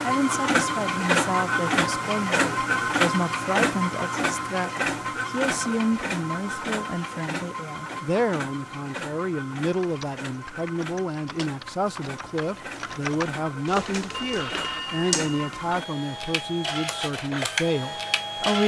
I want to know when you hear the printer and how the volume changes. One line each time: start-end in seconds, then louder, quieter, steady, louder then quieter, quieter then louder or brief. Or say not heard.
0.0-18.6 quieter then louder.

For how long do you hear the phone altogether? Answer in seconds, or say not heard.
2 s.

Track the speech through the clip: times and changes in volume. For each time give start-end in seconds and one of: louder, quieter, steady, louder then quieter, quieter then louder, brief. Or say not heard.
0.0-18.6 steady.